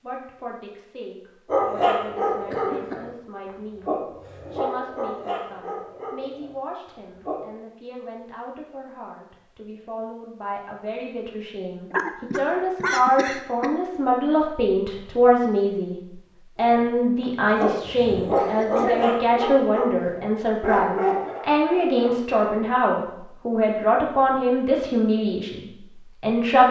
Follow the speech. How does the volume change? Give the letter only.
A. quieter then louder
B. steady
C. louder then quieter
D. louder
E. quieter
D.